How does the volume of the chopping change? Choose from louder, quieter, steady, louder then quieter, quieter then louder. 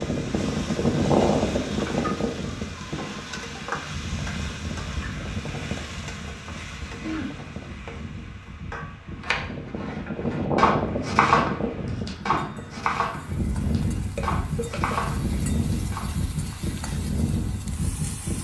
quieter.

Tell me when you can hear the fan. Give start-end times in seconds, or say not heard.
0.0-18.4.